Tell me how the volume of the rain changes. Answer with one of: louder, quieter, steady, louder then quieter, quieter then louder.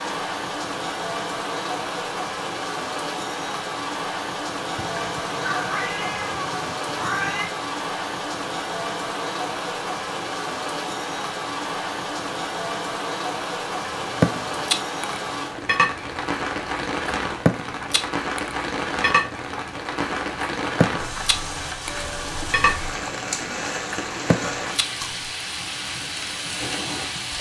steady.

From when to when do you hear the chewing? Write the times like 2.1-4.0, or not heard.
14.0-25.1.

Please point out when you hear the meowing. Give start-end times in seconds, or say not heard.
4.8-7.5.